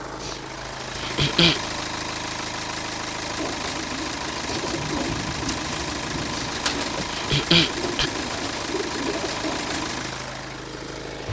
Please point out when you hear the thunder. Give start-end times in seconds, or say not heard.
4.7-6.5.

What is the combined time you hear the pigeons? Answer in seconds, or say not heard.
7 s.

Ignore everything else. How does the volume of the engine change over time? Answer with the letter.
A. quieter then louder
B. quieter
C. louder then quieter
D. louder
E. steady
E.